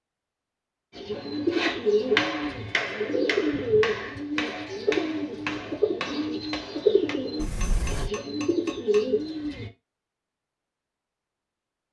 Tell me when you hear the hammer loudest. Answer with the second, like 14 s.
2 s.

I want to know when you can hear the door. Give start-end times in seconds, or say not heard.
7.3-8.1.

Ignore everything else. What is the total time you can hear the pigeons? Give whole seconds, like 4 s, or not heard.
9 s.